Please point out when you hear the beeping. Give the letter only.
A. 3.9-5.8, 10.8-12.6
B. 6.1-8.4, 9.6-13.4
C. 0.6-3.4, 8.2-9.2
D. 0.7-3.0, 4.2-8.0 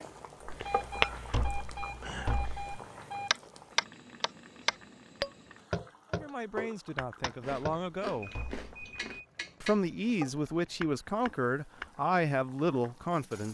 C.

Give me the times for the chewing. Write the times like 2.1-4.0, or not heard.
0.5-2.5, 7.4-9.2.